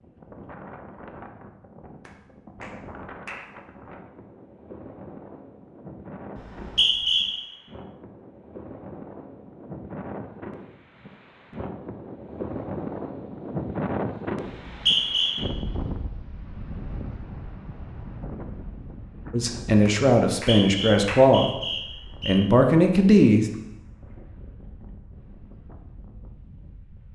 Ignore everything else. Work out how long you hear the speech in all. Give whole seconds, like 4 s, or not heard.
4 s.